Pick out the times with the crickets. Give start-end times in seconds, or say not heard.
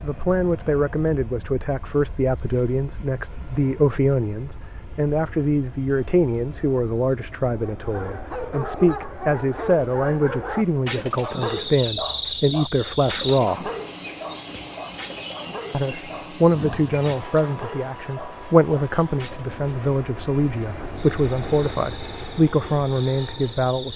11.2-23.9.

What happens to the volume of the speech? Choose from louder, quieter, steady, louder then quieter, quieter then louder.
steady.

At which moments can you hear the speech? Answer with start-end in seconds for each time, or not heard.
0.0-13.7, 15.7-23.9.